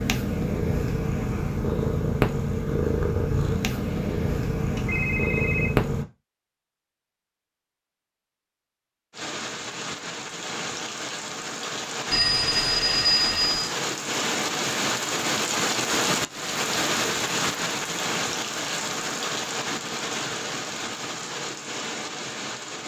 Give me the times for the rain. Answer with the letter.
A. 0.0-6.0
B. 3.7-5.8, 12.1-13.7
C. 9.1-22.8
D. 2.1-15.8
C.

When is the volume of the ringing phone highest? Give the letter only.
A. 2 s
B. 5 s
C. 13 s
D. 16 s
C.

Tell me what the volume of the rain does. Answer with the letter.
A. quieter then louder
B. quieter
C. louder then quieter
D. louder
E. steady
C.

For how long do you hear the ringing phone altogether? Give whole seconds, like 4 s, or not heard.
4 s.